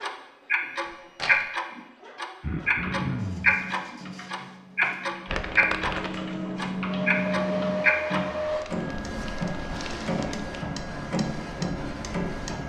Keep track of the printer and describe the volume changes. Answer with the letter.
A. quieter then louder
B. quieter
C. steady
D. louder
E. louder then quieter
D.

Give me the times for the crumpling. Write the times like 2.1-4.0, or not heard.
0.8-1.4, 5.2-6.3, 8.4-10.5.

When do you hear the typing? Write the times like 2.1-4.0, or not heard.
2.8-8.2.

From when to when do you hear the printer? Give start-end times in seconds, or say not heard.
0.0-12.6.